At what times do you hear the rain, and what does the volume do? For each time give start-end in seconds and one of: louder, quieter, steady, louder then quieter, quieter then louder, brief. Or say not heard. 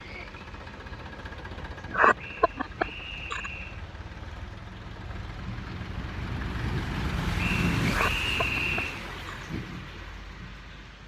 0.0-11.0 louder then quieter.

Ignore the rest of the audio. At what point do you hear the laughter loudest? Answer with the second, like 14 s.
2 s.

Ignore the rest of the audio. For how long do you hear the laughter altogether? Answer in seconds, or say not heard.
3 s.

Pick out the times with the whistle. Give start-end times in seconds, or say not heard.
2.1-3.8, 7.3-9.0.